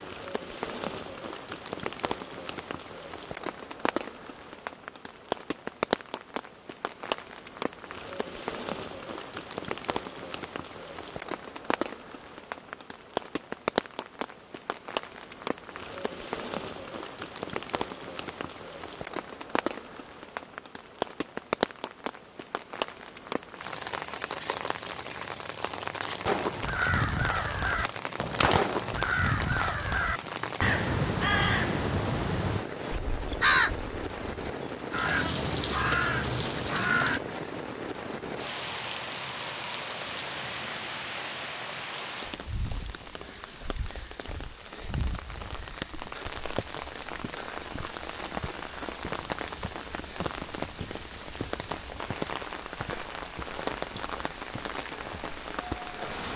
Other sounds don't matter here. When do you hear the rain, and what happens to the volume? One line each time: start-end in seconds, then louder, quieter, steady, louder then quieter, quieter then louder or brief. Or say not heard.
0.0-56.3 steady.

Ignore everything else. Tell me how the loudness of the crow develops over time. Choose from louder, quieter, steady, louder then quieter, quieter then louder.
steady.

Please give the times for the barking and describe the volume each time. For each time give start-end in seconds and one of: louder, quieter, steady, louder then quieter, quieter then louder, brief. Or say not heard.
not heard.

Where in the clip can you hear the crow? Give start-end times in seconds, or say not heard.
26.2-37.2.